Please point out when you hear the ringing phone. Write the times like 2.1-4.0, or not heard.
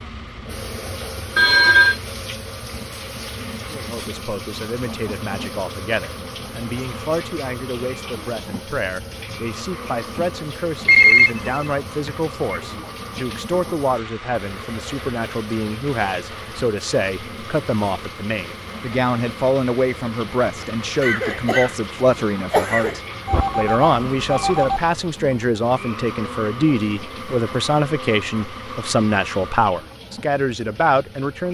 1.4-1.9, 10.8-12.6, 23.2-24.8.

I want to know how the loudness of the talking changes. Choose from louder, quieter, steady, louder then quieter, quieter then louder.
louder.